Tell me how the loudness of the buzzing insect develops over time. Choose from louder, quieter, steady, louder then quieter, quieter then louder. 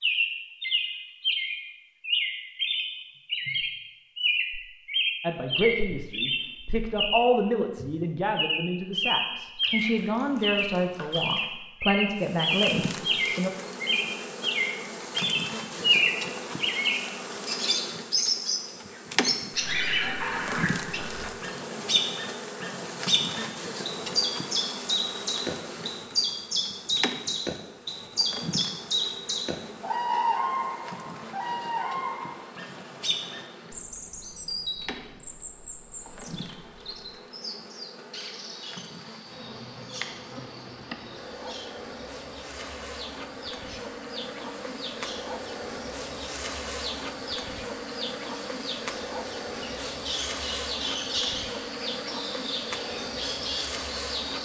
quieter then louder.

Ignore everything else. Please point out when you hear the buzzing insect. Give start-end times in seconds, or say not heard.
12.2-54.4.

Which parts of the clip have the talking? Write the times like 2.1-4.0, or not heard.
5.2-13.5.